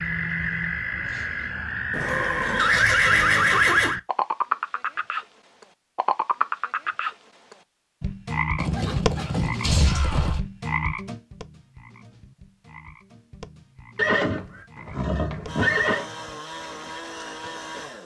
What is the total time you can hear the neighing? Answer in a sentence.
The neighing can be heard for 6 seconds in total.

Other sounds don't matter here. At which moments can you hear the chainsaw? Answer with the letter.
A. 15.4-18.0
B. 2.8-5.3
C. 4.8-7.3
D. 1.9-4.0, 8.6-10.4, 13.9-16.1
A.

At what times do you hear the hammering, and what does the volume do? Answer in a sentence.
The hammering can't be heard in this clip.